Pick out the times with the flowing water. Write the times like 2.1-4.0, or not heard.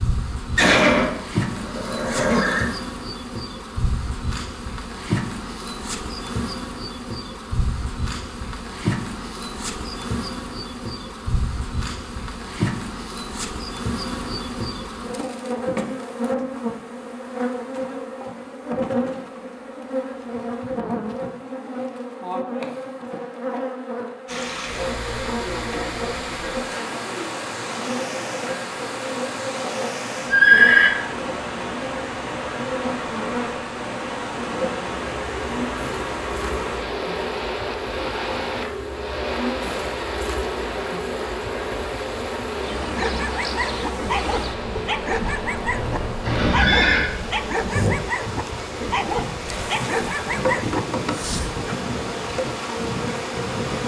24.2-53.8.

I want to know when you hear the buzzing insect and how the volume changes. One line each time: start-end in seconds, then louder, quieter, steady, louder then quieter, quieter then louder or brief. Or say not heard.
0.0-53.8 steady.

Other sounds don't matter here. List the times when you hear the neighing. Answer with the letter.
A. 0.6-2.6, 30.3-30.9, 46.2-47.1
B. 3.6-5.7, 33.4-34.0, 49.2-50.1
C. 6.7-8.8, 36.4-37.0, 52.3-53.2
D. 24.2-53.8
A.